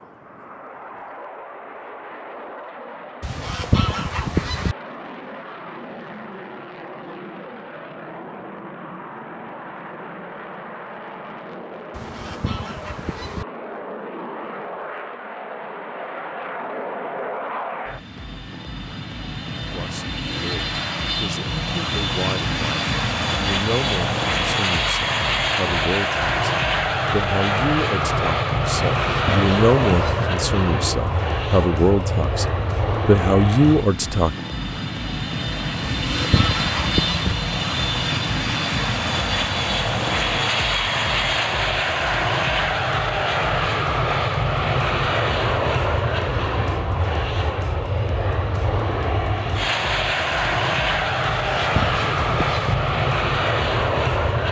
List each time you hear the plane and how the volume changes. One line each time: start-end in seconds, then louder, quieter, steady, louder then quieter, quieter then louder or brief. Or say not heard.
0.0-54.4 louder.